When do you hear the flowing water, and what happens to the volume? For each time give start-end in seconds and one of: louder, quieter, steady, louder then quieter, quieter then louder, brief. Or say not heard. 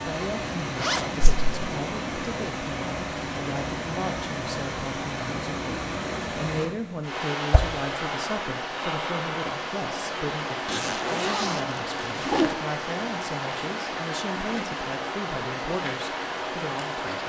0.0-17.2 steady.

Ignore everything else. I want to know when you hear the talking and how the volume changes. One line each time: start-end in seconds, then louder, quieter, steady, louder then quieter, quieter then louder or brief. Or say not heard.
0.1-17.2 steady.